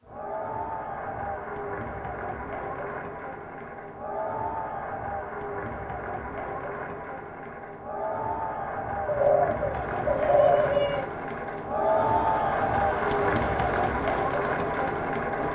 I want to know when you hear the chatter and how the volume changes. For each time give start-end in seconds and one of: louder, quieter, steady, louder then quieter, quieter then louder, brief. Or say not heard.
0.1-15.5 louder.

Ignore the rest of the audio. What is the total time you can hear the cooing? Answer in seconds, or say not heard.
2 s.